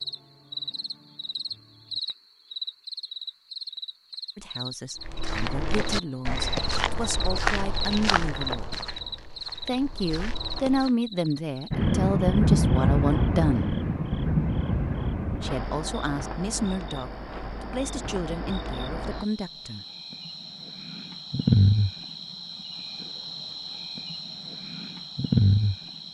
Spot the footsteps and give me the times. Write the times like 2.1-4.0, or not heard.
5.0-10.9.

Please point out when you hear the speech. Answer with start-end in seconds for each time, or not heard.
4.3-8.7, 9.7-13.8, 15.4-19.9.